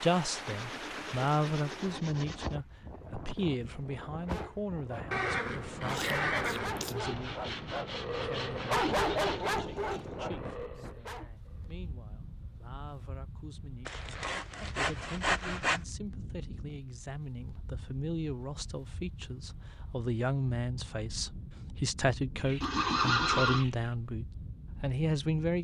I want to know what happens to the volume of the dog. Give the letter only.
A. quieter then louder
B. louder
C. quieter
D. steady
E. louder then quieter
E.